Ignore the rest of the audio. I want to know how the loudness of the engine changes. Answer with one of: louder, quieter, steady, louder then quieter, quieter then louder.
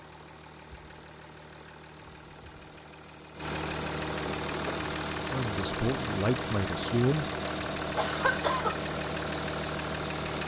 louder.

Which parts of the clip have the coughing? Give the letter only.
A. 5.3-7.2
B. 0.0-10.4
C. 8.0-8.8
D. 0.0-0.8
C.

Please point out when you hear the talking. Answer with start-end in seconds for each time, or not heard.
5.3-7.2.